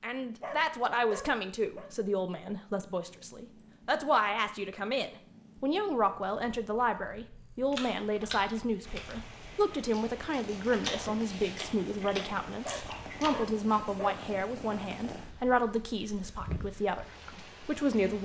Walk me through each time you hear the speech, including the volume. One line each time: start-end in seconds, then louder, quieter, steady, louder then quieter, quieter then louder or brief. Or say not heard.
0.0-18.2 steady.